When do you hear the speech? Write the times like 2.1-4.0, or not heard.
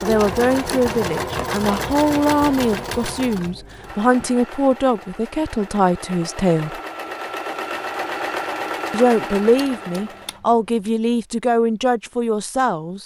0.0-6.8, 8.9-13.0.